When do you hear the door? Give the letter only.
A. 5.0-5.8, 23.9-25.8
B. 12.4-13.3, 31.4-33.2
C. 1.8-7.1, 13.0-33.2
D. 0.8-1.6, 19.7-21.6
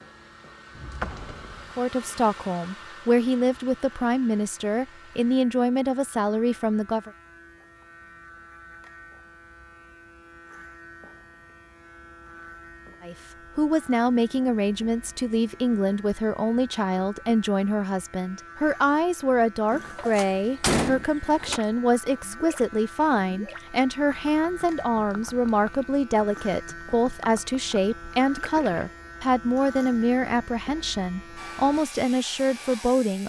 D.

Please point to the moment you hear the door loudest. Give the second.
21 s.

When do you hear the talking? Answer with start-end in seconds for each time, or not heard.
1.8-7.1, 13.0-33.2.